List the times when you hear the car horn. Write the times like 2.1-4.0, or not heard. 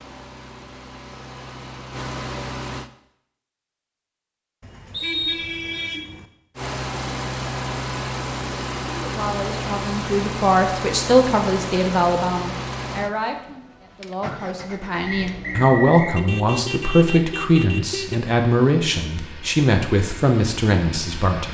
4.6-6.3, 16.1-18.1.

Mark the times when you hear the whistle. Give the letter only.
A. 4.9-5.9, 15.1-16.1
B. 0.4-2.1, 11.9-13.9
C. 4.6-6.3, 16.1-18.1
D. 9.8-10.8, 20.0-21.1
A.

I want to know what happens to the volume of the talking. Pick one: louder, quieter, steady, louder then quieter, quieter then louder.
steady.